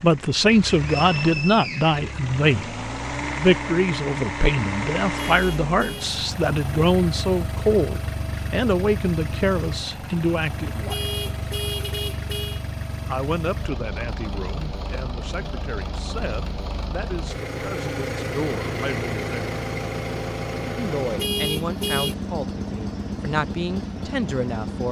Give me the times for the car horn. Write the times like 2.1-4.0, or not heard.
5.2-6.2, 10.8-12.7, 21.1-22.1.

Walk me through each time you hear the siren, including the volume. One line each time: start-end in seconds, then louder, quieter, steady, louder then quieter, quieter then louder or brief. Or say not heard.
not heard.